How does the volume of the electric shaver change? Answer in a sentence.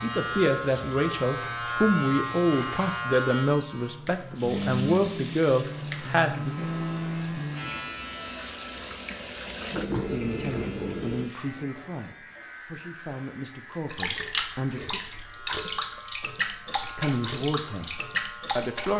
The volume of the electric shaver goes down.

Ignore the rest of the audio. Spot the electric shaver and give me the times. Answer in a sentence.
You can hear the electric shaver from 0.0 to 18.6 s.